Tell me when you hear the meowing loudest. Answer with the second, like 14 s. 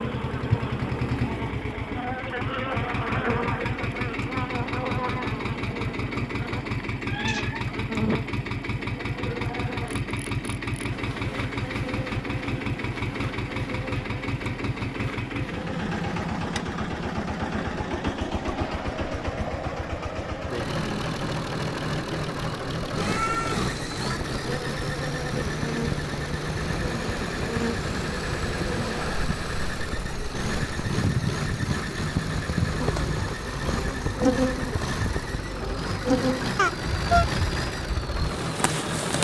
37 s.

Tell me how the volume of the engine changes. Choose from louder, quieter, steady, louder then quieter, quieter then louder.
steady.